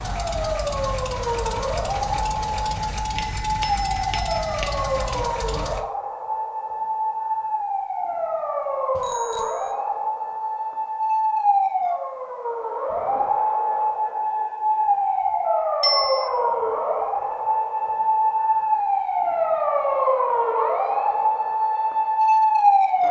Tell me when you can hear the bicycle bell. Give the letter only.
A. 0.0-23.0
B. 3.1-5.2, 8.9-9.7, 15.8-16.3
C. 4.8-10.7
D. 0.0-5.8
B.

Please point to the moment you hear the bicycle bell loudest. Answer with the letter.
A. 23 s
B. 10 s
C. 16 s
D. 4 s
C.